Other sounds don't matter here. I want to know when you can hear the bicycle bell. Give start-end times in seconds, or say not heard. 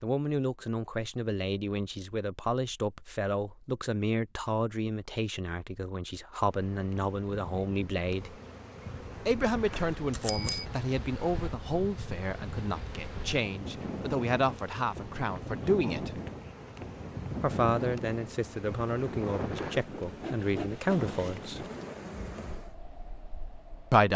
9.7-10.7.